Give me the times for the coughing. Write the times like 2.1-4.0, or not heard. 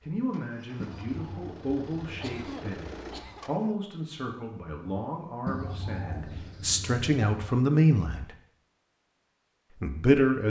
2.2-3.5.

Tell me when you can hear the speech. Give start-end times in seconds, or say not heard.
0.0-8.3, 9.8-10.4.